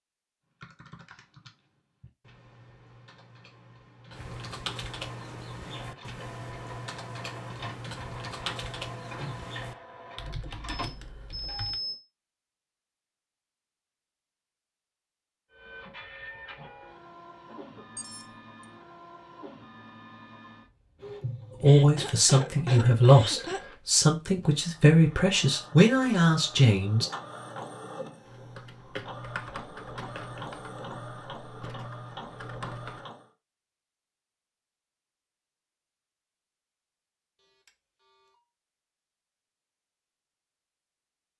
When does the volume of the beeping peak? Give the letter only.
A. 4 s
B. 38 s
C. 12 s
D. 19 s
C.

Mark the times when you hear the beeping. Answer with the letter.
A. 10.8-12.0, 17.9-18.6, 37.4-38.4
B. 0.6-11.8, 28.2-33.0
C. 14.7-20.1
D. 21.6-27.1
A.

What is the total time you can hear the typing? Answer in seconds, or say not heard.
16 s.